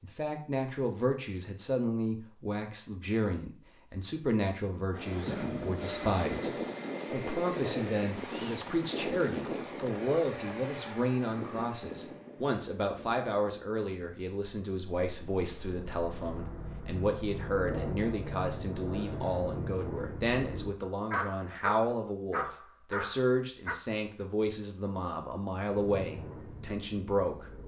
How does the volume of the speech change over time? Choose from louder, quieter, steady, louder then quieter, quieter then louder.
steady.